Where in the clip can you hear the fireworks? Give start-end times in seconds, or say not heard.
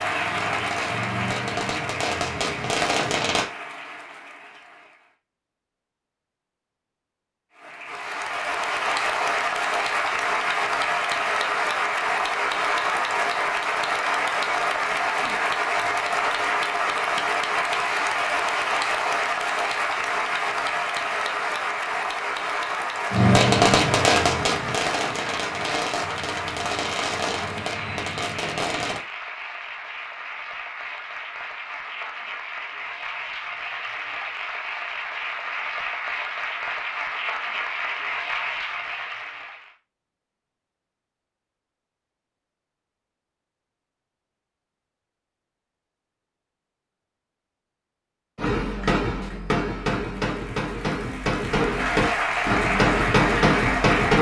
0.0-3.5, 23.1-29.0, 48.4-54.1.